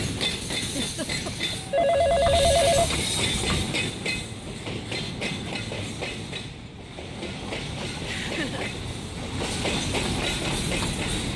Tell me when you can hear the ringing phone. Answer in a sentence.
You can hear the ringing phone from 1.7 to 3.6 s.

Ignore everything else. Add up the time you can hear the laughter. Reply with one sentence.
You can hear the laughter for 2 seconds altogether.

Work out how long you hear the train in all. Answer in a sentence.
The train can be heard for 11 seconds in total.